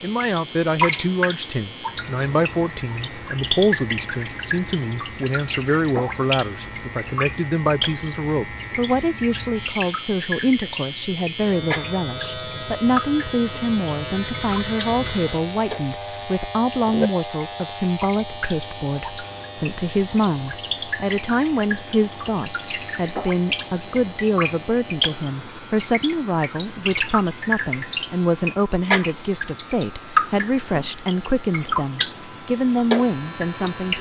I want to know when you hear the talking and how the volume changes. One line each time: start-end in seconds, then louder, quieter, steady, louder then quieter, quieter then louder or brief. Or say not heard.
0.0-33.9 steady.